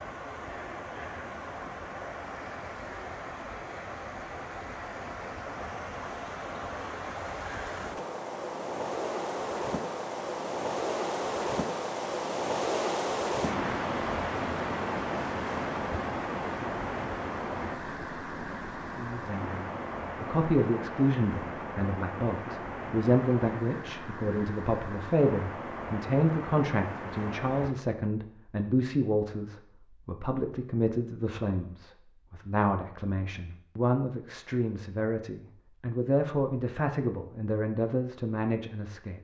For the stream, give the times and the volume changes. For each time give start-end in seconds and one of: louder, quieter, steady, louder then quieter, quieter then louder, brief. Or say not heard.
0.0-27.8 louder then quieter.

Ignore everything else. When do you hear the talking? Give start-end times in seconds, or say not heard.
18.9-39.2.